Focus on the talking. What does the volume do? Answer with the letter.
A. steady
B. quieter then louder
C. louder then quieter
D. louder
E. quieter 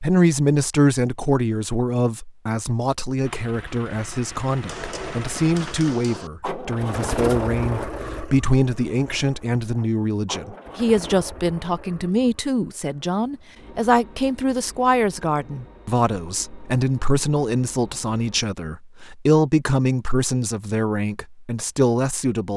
A.